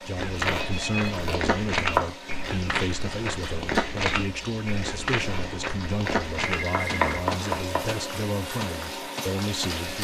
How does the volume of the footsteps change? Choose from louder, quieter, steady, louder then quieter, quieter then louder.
quieter.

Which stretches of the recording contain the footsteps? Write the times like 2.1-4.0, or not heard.
0.1-9.8.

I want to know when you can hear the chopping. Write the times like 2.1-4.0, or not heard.
0.3-2.1, 5.1-7.9.